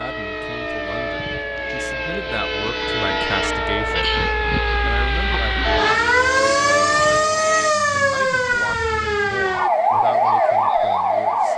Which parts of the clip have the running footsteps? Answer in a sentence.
You can't hear the running footsteps here.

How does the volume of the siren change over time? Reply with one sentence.
The loudness of the siren goes up.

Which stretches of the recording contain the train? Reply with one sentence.
The train can be heard from 0.0 to 7.8 s.